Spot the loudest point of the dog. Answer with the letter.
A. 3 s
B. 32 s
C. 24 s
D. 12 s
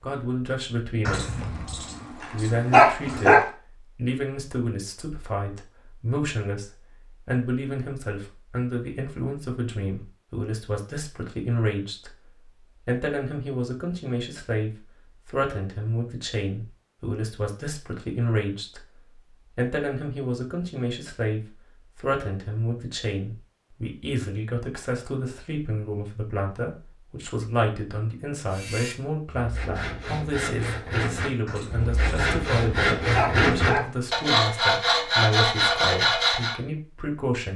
A.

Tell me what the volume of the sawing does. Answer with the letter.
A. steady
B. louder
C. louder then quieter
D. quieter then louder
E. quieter
B.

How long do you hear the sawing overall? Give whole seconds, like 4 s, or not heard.
8 s.